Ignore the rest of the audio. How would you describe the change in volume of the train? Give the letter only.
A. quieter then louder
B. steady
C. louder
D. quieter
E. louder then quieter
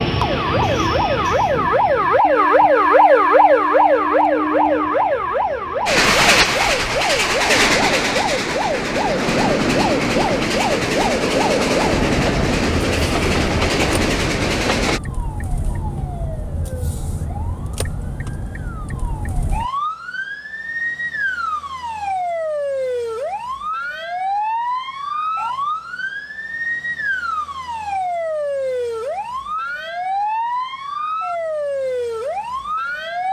C.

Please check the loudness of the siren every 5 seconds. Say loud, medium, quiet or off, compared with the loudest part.
loud, medium, medium, quiet, medium, medium, medium.